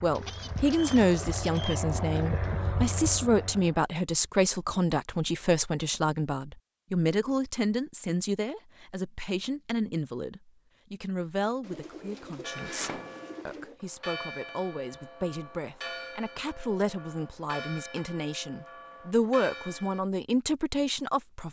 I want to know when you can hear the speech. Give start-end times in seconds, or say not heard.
0.0-21.4.